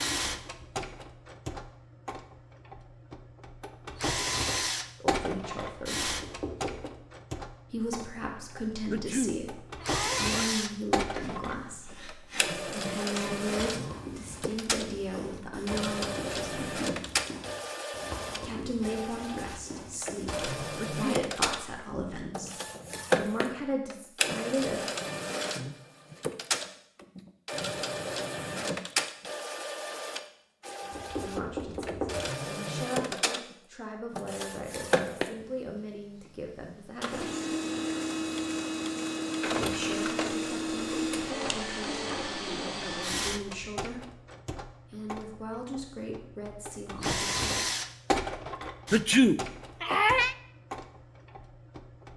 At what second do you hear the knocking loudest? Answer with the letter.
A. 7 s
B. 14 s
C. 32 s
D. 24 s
C.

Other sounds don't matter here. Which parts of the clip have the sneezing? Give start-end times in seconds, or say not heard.
8.9-10.5, 20.8-21.2, 48.9-50.4.